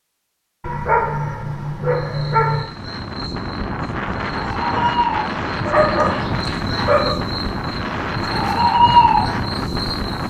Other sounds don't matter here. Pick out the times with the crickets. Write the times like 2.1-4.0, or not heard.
1.9-10.2.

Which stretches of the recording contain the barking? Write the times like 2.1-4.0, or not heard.
0.6-2.6, 5.7-7.2.